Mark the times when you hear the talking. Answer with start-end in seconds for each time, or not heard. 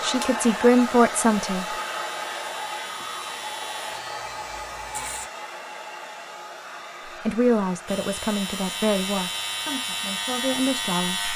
0.0-1.8, 7.0-11.3.